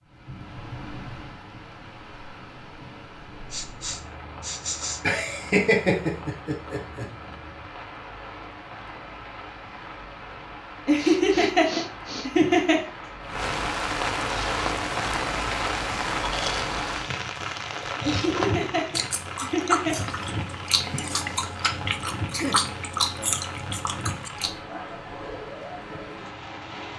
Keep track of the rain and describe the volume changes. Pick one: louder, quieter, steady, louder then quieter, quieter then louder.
louder then quieter.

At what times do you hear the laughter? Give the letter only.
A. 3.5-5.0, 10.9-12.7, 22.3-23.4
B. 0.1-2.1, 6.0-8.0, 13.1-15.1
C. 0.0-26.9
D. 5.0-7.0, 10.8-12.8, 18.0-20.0
D.